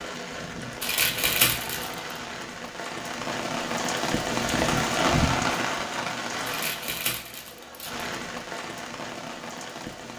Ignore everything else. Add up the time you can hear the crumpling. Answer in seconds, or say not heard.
3 s.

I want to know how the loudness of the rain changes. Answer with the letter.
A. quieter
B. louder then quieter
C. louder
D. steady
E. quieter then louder
B.